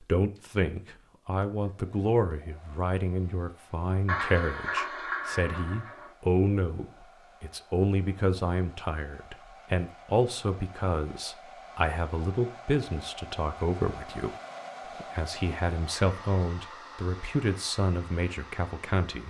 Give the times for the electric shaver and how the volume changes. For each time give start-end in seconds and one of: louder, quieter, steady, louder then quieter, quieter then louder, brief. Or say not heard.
not heard.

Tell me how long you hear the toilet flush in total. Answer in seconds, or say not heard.
2 s.